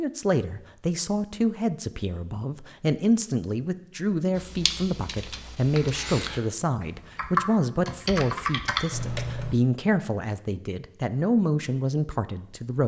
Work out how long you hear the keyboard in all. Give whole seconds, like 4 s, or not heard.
5 s.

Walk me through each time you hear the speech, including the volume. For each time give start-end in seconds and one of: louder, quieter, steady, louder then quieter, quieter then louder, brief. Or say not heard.
0.0-12.8 steady.